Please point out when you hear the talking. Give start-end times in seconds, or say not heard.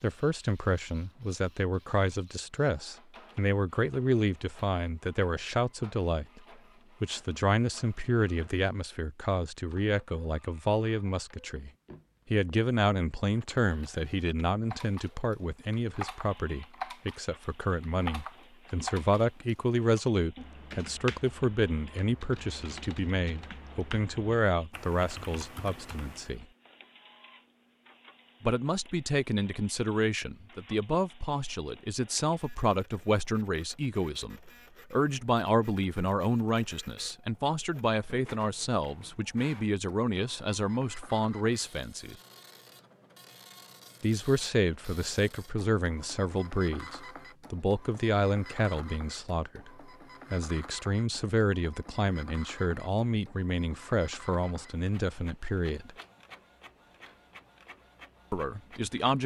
0.0-6.4, 7.0-11.7, 12.3-26.4, 28.4-42.1, 44.0-55.9, 58.3-59.2.